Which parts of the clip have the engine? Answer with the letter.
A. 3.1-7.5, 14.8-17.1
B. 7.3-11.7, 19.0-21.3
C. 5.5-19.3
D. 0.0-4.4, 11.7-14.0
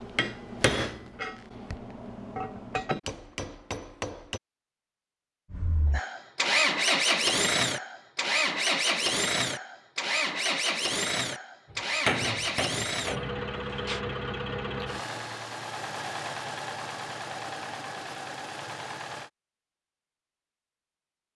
C.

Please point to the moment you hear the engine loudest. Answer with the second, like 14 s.
7 s.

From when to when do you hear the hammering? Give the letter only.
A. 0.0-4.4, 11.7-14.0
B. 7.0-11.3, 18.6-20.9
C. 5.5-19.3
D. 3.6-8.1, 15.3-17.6
A.